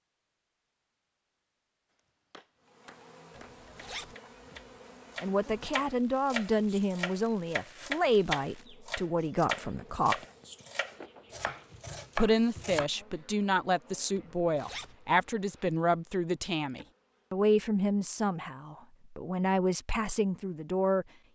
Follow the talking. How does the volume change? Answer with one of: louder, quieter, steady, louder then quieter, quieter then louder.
steady.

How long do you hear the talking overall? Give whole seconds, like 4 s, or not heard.
14 s.